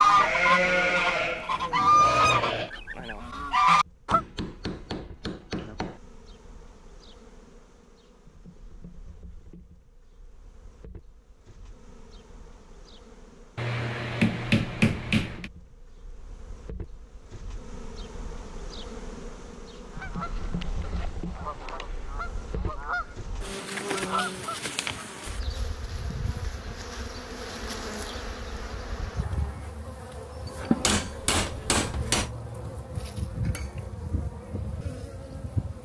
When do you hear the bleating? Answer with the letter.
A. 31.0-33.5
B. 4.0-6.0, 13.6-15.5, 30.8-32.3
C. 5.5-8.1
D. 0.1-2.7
D.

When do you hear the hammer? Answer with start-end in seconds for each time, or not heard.
4.0-6.0, 13.6-15.5, 30.8-32.3.